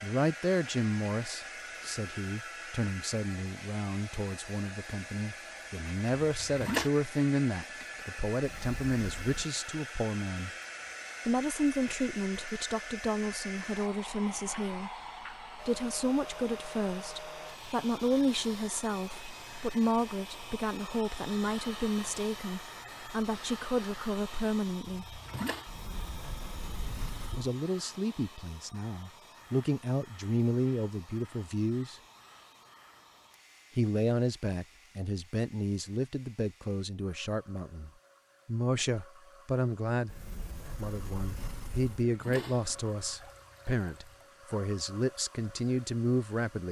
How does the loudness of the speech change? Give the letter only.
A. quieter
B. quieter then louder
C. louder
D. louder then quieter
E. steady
E.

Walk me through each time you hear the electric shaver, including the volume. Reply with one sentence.
The electric shaver can't be heard in this clip.